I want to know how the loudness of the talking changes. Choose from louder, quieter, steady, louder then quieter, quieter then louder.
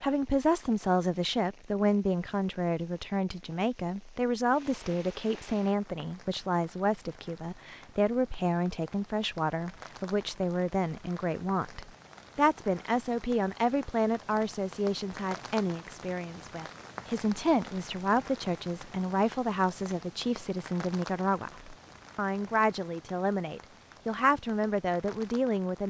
steady.